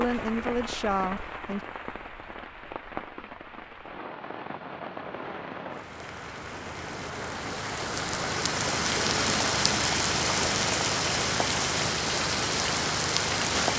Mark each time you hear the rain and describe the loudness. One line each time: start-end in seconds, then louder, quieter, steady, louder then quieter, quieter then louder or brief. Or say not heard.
0.0-13.7 louder.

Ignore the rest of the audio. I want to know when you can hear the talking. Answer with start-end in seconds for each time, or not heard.
0.0-1.6.